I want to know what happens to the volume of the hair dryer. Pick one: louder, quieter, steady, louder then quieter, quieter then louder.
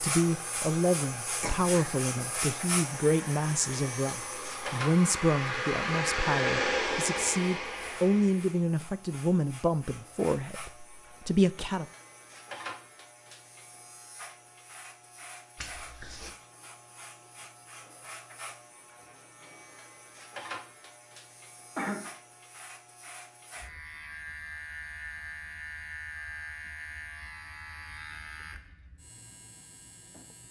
louder.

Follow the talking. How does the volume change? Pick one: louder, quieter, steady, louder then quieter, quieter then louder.
steady.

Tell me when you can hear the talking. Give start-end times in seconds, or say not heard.
0.0-11.8.